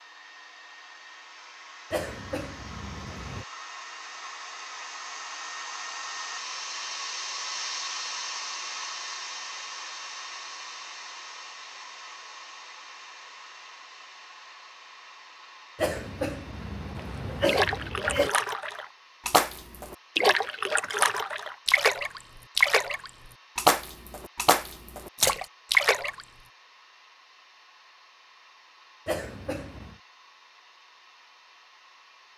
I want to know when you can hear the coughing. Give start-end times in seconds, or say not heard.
1.9-3.5, 15.8-18.3, 29.1-29.9.